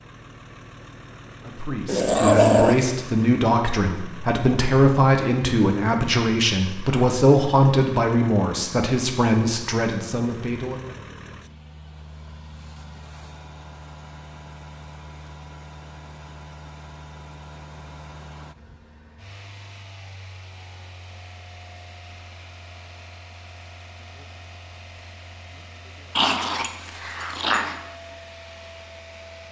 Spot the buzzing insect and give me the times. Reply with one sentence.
The buzzing insect can't be heard in this clip.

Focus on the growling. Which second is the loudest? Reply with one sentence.
The volume of the growling peaks at 2 seconds.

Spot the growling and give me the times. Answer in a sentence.
The growling can be heard from 1.9 to 2.9 s and from 26.1 to 27.8 s.